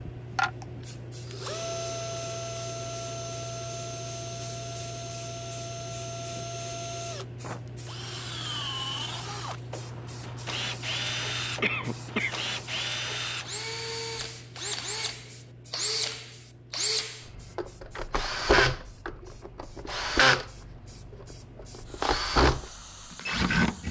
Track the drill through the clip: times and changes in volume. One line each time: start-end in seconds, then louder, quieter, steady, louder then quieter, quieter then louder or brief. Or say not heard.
0.1-23.8 louder.